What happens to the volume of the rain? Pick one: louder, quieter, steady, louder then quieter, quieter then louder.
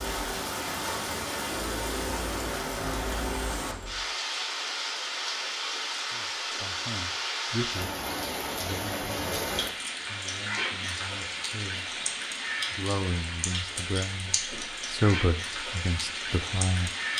steady.